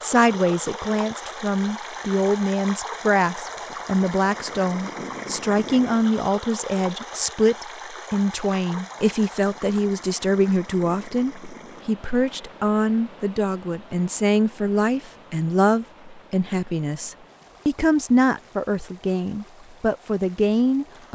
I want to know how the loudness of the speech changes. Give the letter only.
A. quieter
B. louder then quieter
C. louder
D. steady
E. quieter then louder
D.